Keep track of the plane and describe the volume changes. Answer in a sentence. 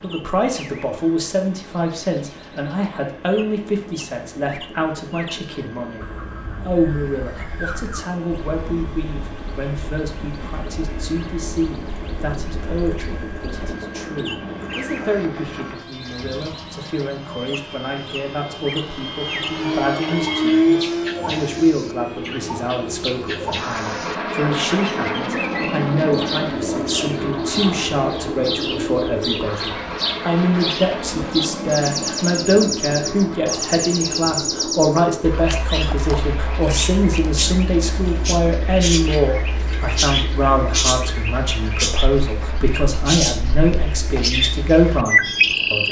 The loudness of the plane goes up, then down.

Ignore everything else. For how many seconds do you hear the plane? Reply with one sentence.
You can hear the plane for 46 seconds altogether.